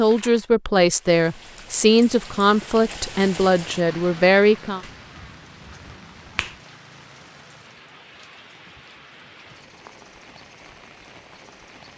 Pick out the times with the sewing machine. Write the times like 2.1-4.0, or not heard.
not heard.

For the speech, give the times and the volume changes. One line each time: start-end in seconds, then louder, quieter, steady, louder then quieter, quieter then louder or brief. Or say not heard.
0.0-4.8 steady.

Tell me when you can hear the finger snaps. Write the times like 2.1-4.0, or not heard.
4.8-6.6.